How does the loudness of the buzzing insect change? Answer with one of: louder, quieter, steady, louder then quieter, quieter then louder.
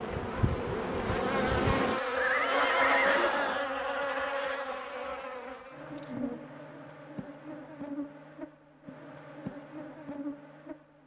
quieter.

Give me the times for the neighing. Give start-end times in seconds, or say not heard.
2.1-3.6.